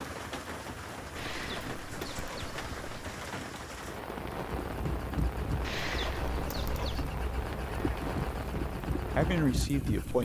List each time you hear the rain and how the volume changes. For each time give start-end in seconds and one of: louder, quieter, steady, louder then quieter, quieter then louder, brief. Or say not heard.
0.0-10.2 steady.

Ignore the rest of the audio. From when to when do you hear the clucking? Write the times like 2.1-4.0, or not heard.
1.1-2.9, 5.6-7.2.